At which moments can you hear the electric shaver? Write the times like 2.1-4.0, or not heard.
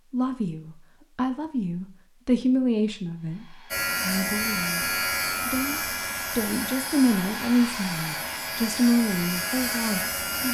3.7-10.4.